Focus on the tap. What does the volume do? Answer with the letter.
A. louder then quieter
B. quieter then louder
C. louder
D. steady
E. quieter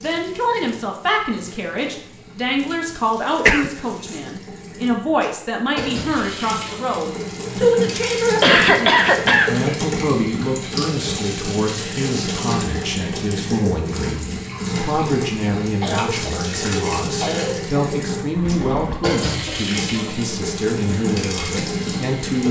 C.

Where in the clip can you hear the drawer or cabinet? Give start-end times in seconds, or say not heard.
18.4-19.0.